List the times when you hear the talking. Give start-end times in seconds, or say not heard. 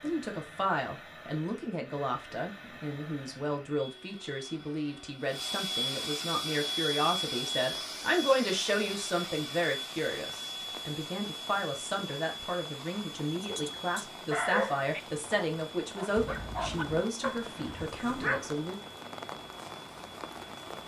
0.0-18.8.